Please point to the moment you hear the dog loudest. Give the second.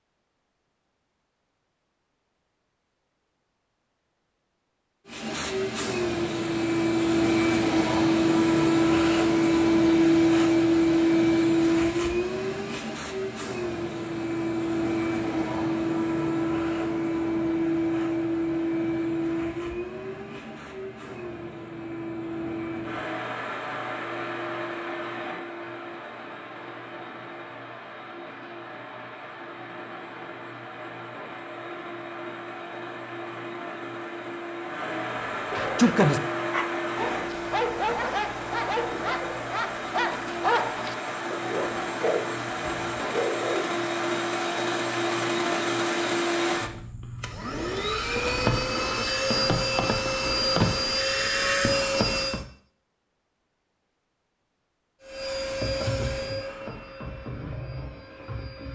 36 s.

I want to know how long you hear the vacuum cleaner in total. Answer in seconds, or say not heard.
51 s.